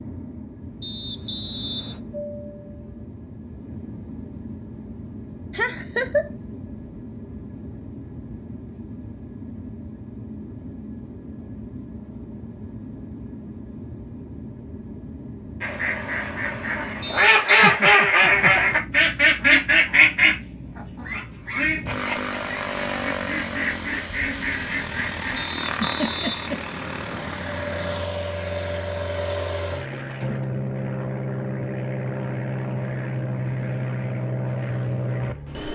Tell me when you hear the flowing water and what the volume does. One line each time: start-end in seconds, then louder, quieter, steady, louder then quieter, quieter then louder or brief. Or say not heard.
not heard.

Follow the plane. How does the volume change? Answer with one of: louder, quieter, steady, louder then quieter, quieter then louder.
louder.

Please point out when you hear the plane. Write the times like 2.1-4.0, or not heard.
0.0-35.6.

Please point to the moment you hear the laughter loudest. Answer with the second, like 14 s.
6 s.